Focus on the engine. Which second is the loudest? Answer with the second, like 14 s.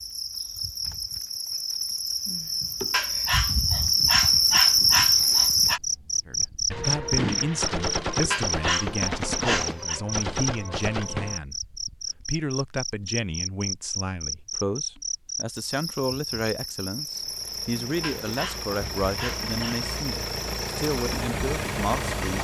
22 s.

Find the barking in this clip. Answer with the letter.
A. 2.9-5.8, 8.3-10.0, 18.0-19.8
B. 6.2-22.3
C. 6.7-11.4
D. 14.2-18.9
A.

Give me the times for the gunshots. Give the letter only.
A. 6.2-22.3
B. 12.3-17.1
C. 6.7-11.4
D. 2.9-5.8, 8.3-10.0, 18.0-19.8
C.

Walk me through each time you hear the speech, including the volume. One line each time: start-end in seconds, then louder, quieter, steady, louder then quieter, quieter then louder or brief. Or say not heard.
6.2-22.3 steady.